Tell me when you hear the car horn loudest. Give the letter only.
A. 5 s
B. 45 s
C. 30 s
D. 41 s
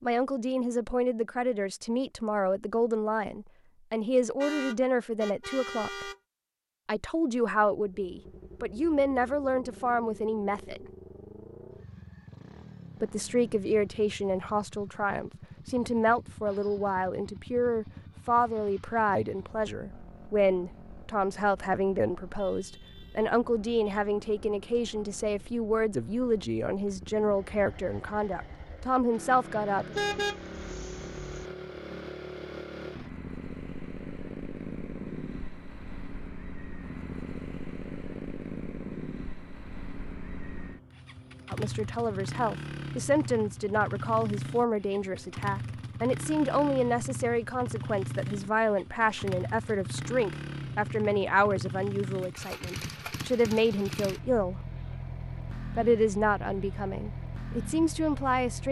C.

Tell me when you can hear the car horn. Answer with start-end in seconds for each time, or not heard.
4.4-6.2, 29.9-31.4.